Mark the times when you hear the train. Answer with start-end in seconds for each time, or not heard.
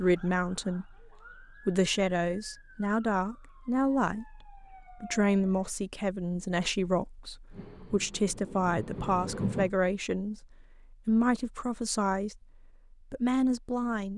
7.5-9.7.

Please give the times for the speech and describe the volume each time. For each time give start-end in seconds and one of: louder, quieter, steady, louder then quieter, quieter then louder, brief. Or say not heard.
0.0-14.1 steady.